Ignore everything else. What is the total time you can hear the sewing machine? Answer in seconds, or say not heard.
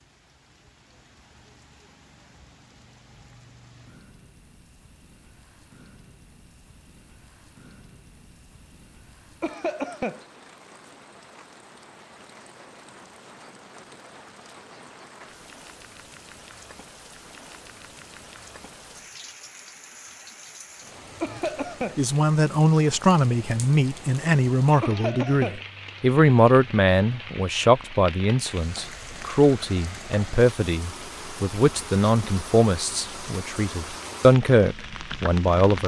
not heard.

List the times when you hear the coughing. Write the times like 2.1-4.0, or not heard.
9.4-10.2, 21.2-22.0, 24.8-25.6.